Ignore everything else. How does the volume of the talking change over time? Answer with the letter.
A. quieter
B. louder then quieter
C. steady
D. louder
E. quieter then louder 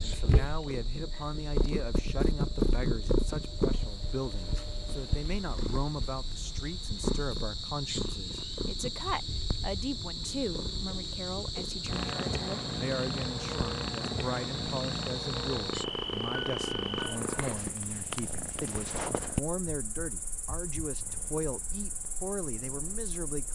C.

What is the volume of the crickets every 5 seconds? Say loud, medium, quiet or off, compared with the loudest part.
medium, loud, loud, loud, medium.